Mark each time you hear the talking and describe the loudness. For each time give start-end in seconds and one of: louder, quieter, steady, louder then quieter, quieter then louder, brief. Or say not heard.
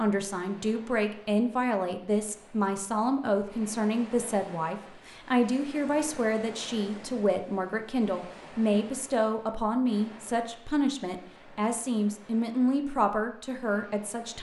0.0-14.3 steady.